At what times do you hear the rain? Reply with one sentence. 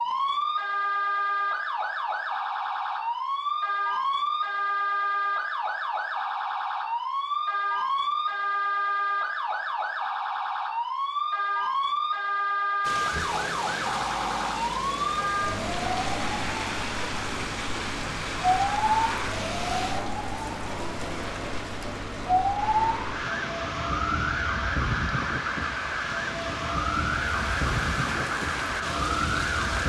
The rain can be heard from 12.8 to 29.8 s.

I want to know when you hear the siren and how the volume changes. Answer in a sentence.
You can hear the siren from 0.0 to 29.8 s, at a steady volume.